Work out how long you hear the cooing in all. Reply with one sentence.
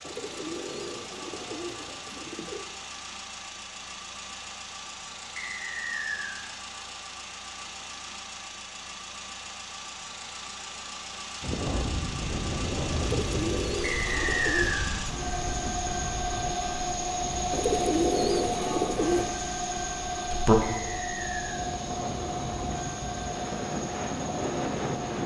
You can hear the cooing for 6 seconds altogether.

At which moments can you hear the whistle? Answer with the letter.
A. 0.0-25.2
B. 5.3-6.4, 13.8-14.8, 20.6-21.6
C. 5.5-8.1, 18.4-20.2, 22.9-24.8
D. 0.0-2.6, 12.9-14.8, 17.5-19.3
B.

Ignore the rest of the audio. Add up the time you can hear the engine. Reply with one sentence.
The engine can be heard for 25 seconds in total.